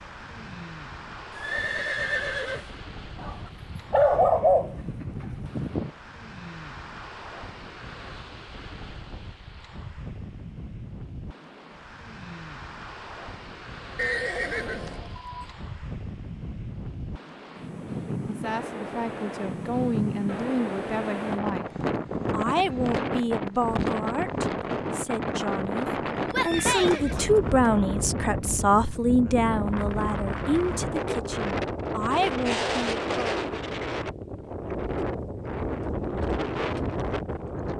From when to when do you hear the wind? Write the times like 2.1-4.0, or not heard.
0.0-37.7.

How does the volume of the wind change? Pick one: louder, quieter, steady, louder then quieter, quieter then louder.
louder.